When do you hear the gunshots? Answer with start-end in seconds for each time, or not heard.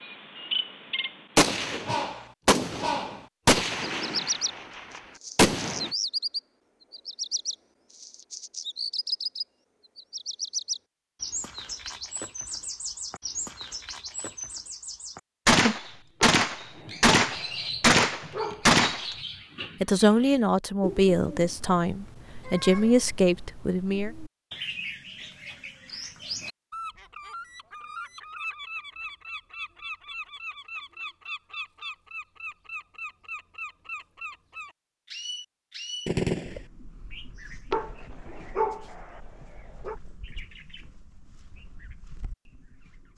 1.4-5.9, 15.4-19.1, 36.0-36.6.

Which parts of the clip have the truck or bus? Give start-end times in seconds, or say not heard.
not heard.